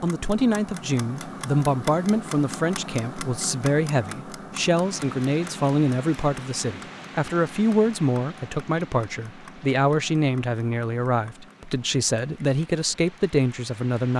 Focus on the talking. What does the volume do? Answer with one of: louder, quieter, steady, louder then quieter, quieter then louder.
steady.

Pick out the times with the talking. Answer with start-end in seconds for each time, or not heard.
0.0-14.1.